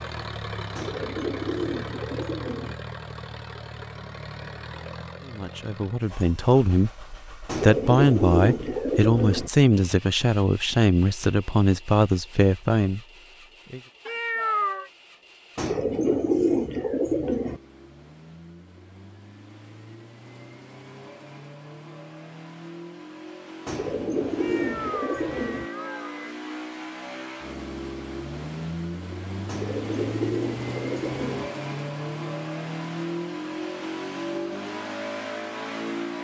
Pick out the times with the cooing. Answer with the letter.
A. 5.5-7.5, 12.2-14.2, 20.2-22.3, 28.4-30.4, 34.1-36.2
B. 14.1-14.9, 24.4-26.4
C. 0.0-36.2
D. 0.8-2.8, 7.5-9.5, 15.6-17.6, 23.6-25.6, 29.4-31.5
D.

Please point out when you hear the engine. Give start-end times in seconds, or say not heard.
0.0-36.2.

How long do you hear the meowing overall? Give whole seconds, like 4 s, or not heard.
3 s.